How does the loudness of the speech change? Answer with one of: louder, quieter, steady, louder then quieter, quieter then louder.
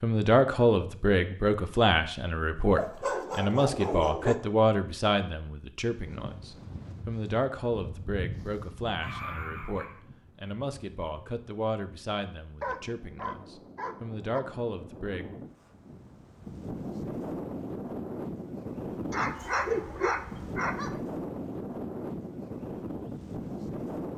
quieter.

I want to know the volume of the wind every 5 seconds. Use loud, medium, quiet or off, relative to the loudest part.
off, medium, quiet, loud, loud.